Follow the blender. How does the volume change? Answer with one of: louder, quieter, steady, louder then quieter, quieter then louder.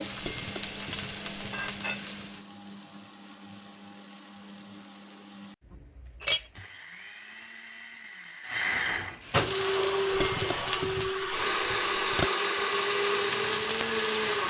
louder.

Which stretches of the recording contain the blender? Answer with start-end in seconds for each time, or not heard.
0.0-14.4.